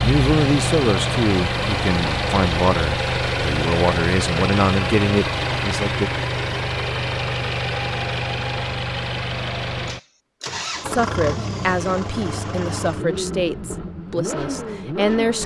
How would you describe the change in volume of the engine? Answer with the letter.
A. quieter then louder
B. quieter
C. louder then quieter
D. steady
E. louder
B.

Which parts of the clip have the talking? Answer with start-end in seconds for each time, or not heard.
0.0-6.1, 10.8-15.4.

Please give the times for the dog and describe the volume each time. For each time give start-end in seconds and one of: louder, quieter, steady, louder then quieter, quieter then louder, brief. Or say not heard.
not heard.